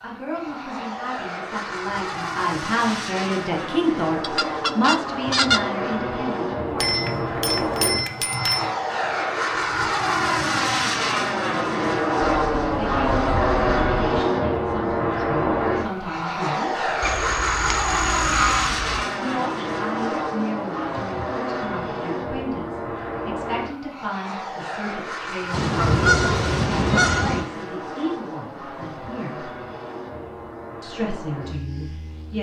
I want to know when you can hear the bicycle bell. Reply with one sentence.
You can hear the bicycle bell from 6.8 to 8.7 s.